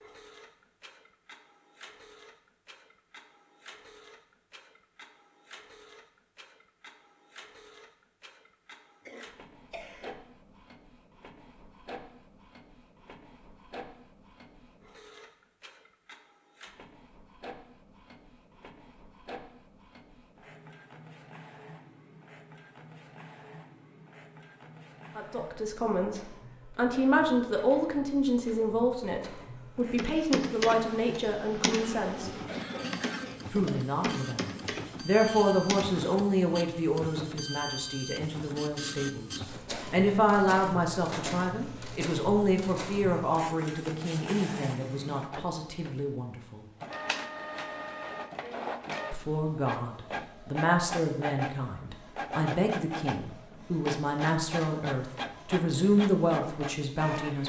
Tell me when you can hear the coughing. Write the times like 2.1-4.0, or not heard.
9.1-10.2, 31.6-33.5.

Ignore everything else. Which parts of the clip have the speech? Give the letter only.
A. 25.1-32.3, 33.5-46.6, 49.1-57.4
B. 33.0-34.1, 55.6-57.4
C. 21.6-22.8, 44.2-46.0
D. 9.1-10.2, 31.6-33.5
A.